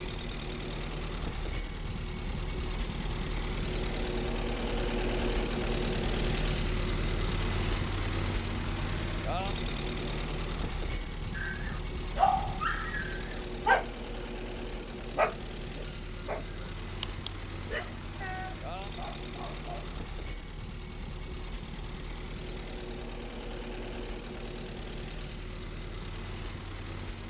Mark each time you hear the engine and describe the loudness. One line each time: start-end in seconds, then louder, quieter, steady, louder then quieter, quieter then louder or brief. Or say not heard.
0.0-27.2 quieter.